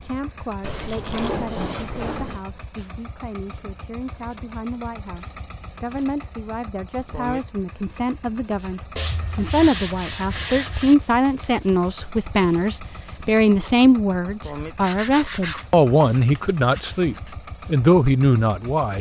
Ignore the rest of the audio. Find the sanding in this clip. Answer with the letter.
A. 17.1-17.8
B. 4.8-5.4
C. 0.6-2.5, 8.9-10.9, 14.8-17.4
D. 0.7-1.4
C.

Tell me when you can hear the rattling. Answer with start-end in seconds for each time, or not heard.
0.7-1.4.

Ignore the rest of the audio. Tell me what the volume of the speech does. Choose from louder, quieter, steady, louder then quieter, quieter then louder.
louder.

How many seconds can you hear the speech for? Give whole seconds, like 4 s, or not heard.
19 s.